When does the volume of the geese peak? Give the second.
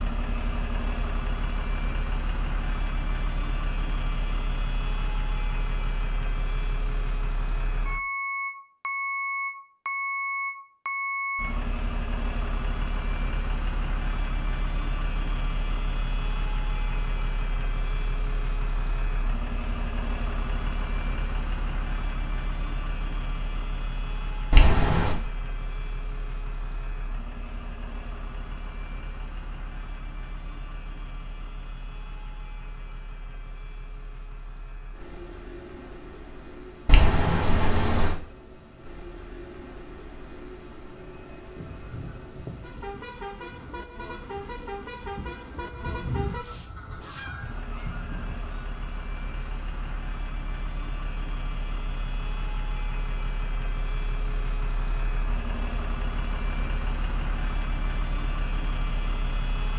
46 s.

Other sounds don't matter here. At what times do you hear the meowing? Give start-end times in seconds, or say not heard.
24.5-25.2, 36.9-38.1.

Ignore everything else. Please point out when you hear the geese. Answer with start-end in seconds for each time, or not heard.
41.5-50.0.